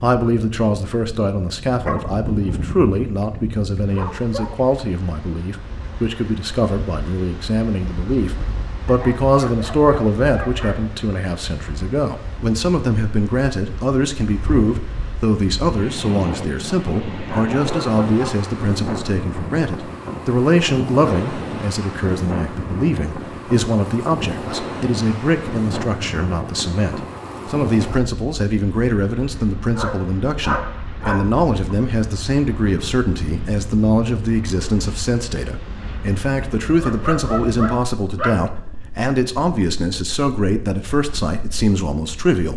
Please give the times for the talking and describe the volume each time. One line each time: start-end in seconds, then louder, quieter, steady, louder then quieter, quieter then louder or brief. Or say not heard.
0.0-42.5 steady.